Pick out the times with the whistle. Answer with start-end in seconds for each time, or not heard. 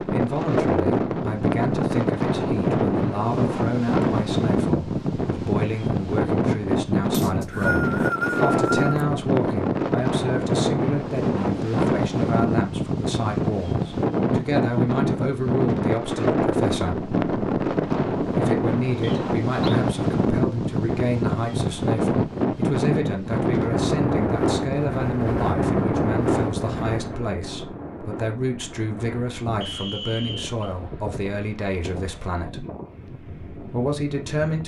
7.1-8.9, 19.0-19.8, 29.6-30.6.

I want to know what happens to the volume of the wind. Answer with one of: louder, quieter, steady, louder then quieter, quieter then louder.
quieter.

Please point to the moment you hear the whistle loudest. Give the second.
8 s.